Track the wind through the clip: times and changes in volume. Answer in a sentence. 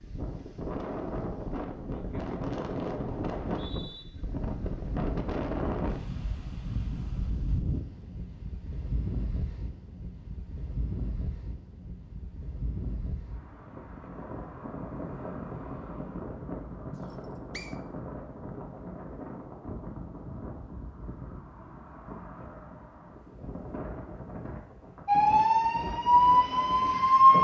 The wind can be heard from 0.0 to 27.1 s, getting quieter.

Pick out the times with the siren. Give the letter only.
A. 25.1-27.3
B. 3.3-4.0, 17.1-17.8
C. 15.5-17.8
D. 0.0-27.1
A.